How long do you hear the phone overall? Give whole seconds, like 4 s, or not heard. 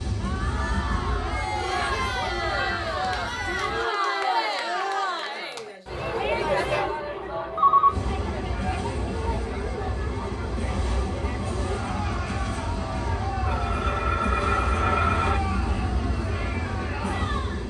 4 s.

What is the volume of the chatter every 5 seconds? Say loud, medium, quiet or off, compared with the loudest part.
loud, loud, medium, medium.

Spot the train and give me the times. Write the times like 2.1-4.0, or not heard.
0.0-3.9, 7.8-17.6.